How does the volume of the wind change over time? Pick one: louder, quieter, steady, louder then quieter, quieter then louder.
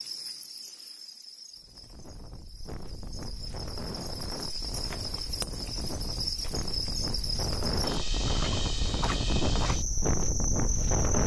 louder.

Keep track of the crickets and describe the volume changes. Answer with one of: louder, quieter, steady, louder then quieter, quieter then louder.
louder.